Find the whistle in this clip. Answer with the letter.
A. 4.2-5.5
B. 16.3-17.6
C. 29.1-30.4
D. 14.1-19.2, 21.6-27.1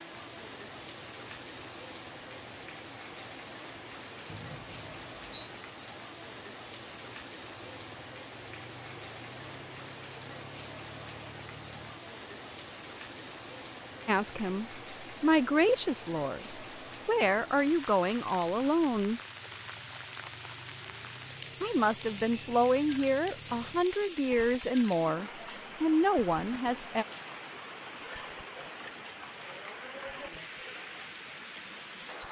A.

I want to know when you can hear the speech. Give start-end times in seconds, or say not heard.
14.1-19.2, 21.6-27.1.